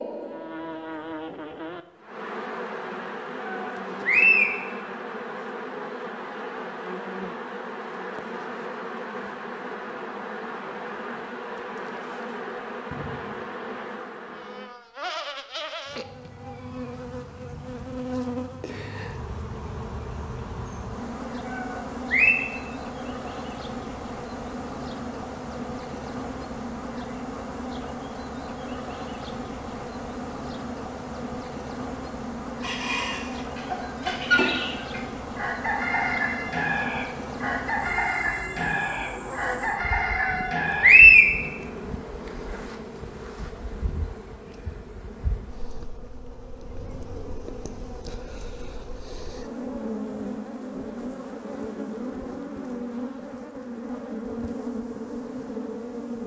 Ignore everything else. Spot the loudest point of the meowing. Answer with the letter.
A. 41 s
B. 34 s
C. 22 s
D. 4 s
A.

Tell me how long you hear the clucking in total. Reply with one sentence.
You can hear the clucking for 8 seconds altogether.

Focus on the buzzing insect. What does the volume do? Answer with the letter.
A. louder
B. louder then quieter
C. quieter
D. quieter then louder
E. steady
E.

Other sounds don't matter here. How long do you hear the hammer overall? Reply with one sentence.
You can't hear the hammer here.